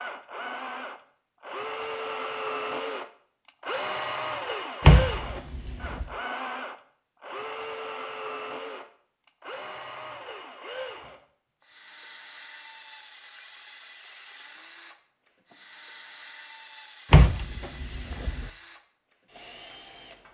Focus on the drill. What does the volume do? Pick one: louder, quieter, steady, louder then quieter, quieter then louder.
quieter.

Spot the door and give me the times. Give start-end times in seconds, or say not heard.
4.8-6.0, 17.1-18.5.